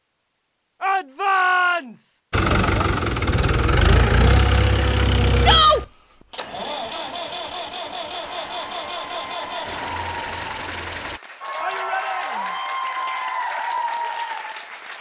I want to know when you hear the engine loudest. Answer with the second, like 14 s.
4 s.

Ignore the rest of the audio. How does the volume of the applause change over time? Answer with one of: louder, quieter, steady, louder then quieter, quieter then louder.
louder.